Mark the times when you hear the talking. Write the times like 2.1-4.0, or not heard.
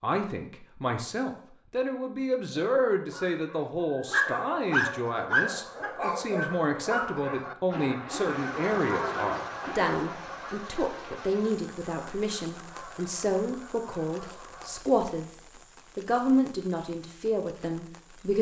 0.0-18.3.